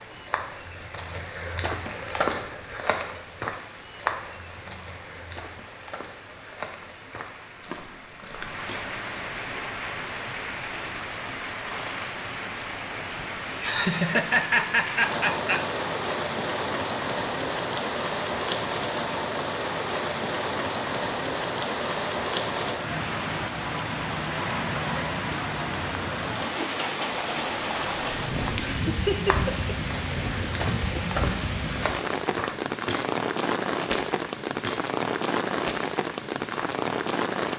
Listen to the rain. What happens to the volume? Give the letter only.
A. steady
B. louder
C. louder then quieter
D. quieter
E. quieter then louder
B.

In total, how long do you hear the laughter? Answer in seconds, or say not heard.
3 s.